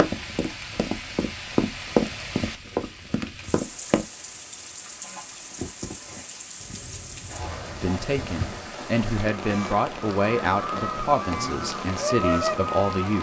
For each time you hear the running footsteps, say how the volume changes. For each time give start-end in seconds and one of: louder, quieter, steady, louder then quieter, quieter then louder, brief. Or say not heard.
0.0-4.0 louder then quieter.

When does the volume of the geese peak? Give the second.
12 s.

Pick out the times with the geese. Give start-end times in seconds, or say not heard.
5.0-13.1.